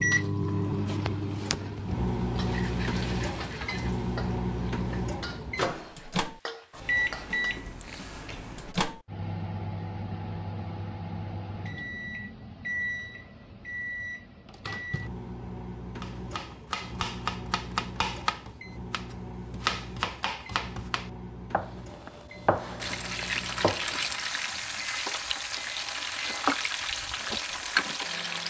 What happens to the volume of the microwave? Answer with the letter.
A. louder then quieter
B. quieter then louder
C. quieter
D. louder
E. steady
C.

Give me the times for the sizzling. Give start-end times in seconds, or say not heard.
0.0-7.6, 22.8-28.4.